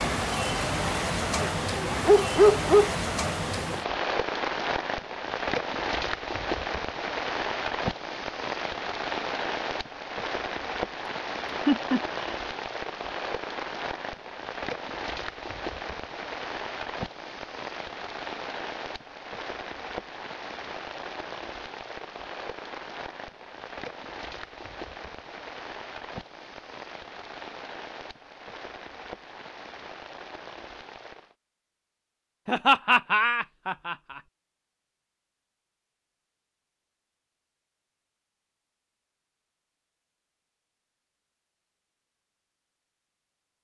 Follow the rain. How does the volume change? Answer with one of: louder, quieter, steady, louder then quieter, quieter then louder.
quieter.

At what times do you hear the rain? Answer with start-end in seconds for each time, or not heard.
0.0-31.4.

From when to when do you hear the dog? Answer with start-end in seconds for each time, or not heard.
1.4-2.9.